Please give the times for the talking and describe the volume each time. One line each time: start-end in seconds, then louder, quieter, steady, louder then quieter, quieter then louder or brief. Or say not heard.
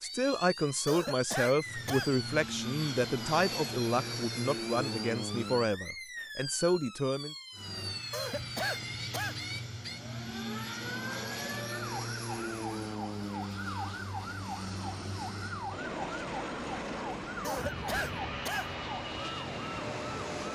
0.0-7.3 steady.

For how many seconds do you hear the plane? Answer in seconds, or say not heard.
17 s.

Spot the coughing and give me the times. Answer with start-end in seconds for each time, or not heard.
0.8-2.1, 8.1-9.3, 17.4-18.7.